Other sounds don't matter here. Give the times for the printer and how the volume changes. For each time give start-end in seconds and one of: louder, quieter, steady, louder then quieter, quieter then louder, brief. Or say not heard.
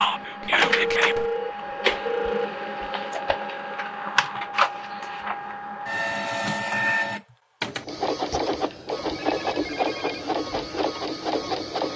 0.0-11.9 steady.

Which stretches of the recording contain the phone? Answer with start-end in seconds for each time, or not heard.
0.7-2.5, 9.2-10.3.